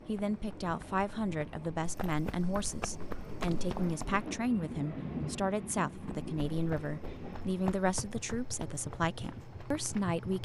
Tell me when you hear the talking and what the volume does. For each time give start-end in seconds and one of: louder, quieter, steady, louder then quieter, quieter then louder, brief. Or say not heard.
0.1-10.4 steady.